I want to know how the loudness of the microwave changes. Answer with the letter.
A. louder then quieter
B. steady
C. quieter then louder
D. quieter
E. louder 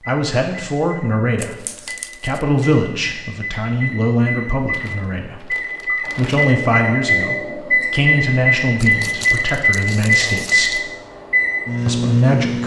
E.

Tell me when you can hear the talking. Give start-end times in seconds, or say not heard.
0.1-10.8, 11.8-12.6.